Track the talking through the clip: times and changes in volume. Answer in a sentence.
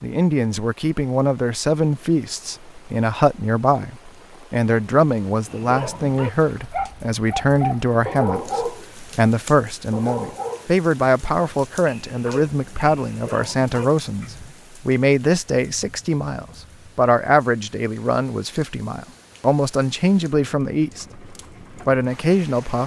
You can hear the talking from 0.0 to 21.1 s, at a steady volume; and briefly from 21.9 to 22.8 s.